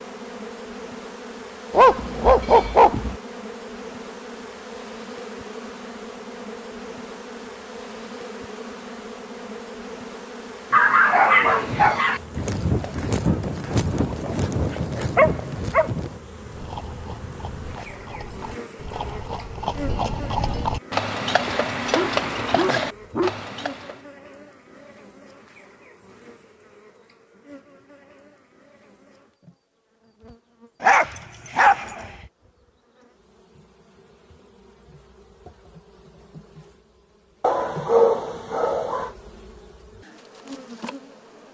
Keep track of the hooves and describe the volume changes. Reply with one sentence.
The loudness of the hooves goes down, then up.